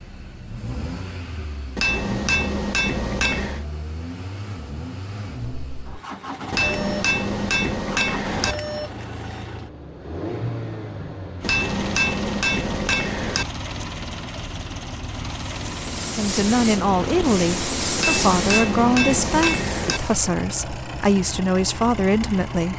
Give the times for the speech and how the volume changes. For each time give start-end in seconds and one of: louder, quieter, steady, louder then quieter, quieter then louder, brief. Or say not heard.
16.1-22.7 steady.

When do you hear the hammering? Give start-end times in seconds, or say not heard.
1.8-3.6, 6.5-8.6, 11.4-13.4, 17.9-20.0.